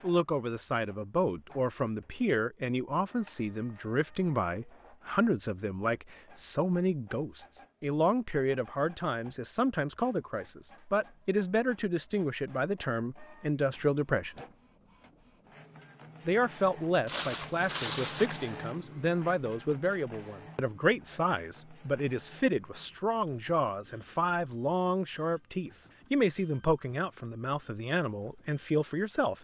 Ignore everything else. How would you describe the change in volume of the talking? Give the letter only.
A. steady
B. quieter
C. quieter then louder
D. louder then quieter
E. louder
A.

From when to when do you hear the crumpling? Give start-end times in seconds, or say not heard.
17.1-18.3.